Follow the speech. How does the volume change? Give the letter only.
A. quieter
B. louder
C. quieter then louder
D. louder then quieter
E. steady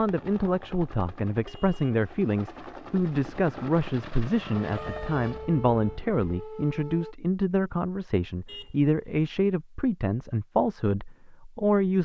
E.